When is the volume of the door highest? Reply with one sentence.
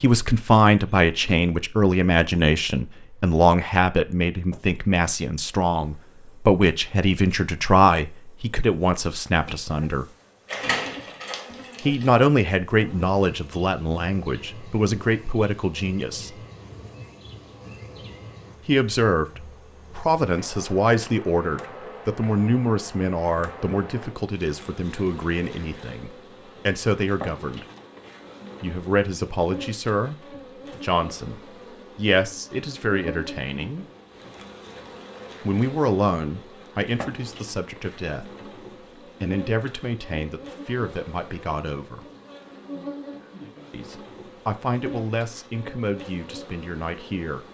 The volume of the door peaks at 11 seconds.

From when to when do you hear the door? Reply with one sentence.
The door can be heard from 10.4 to 12.1 s.